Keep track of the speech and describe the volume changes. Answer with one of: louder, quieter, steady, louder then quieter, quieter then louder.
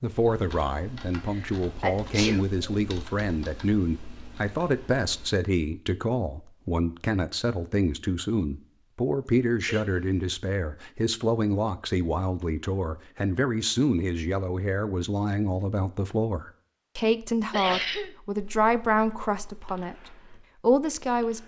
steady.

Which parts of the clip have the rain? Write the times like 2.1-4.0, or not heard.
not heard.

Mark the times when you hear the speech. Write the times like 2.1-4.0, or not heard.
0.0-21.4.